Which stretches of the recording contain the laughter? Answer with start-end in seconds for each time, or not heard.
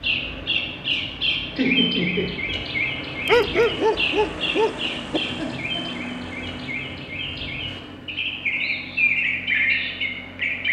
1.6-2.4, 5.3-6.0.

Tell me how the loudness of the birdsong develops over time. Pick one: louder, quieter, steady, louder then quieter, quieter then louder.
quieter then louder.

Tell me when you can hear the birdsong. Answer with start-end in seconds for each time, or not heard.
0.0-10.6.